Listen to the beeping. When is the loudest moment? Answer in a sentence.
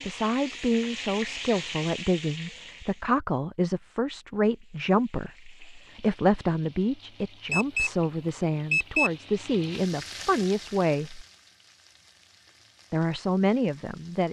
The loudest moment of the beeping is at 9 seconds.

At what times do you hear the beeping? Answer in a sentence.
You can hear the beeping from 7.5 to 7.9 s and from 8.7 to 9.1 s.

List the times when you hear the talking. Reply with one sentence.
You can hear the talking from 0.1 to 11.2 s and from 12.9 to 14.2 s.